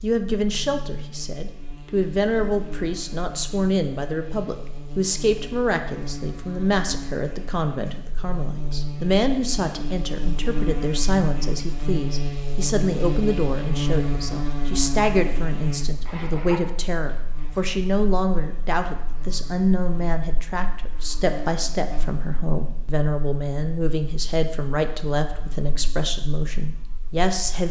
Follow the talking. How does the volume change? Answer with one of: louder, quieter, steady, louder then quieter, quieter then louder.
steady.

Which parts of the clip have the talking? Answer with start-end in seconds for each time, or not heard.
0.0-27.6.